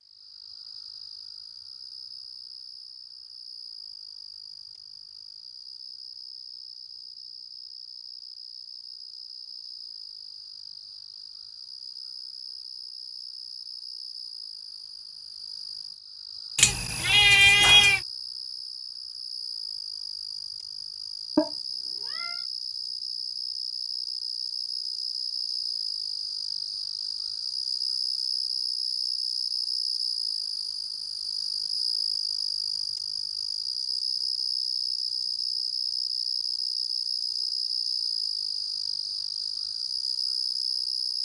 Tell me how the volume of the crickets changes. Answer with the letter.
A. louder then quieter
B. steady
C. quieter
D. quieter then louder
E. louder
E.